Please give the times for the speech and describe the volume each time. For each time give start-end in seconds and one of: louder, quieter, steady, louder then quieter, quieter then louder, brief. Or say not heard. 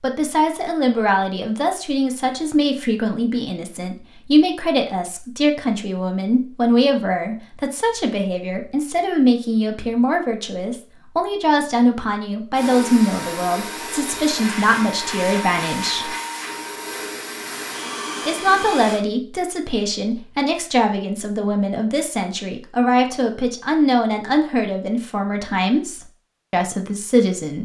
0.0-16.1 steady
18.2-27.6 steady.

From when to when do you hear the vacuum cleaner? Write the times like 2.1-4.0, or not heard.
12.5-19.0.